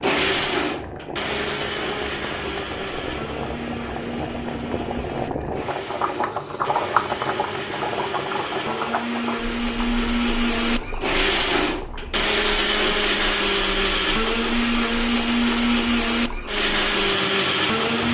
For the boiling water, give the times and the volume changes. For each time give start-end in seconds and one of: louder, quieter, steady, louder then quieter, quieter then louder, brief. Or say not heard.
0.1-18.0 louder then quieter.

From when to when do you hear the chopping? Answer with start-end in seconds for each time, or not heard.
not heard.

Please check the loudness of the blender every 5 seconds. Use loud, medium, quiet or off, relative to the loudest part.
medium, medium, loud, loud.